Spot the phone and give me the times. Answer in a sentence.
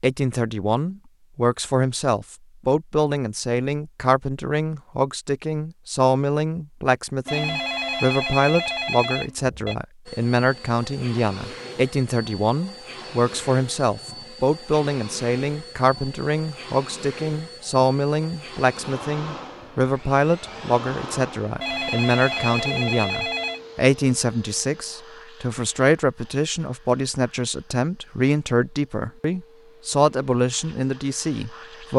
You can hear the phone from 7.2 to 9.8 s and from 21.6 to 23.6 s.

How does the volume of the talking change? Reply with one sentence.
The volume of the talking stays about the same.